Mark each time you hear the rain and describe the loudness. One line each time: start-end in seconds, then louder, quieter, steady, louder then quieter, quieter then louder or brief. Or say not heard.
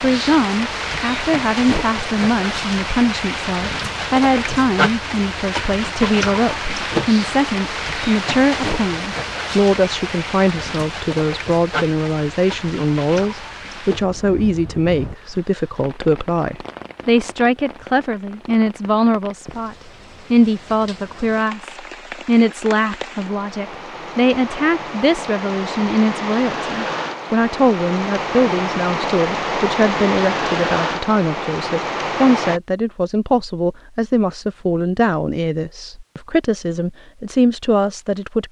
0.0-32.6 quieter then louder.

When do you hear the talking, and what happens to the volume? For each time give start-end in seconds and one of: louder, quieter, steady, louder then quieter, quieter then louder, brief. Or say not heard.
0.0-38.4 steady.